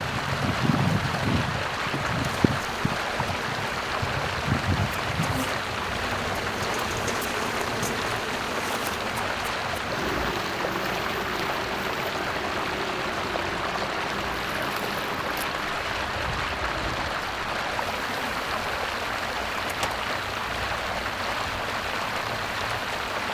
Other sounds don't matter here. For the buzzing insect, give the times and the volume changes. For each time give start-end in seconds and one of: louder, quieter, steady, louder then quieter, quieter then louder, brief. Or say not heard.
0.0-23.2 quieter.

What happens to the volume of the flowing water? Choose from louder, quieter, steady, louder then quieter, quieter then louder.
steady.